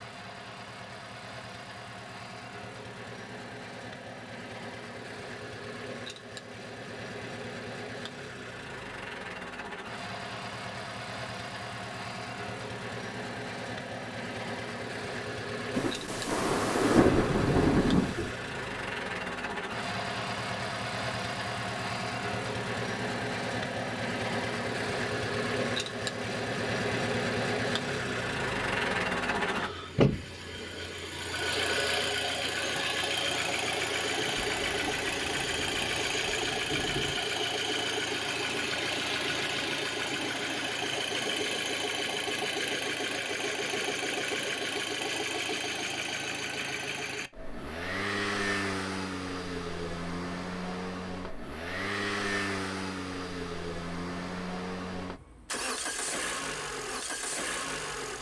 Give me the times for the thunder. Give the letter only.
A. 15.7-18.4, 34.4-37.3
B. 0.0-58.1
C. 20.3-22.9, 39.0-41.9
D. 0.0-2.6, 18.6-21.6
A.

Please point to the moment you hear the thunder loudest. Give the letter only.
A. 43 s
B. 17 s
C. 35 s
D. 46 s
B.